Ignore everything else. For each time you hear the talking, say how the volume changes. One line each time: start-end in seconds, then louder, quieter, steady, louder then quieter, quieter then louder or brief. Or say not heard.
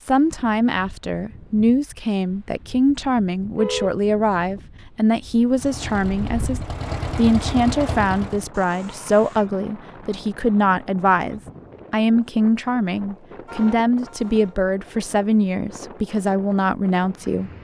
0.1-17.5 steady.